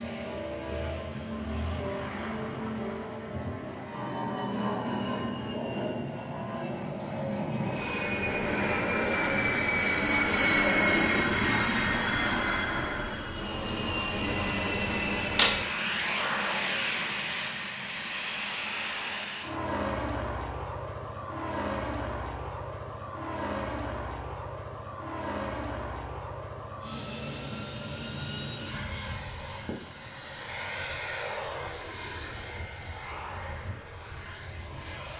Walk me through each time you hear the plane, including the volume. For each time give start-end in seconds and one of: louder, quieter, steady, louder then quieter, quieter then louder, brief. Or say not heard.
0.0-35.1 louder then quieter.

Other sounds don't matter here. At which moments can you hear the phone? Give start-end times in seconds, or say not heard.
14.2-15.7.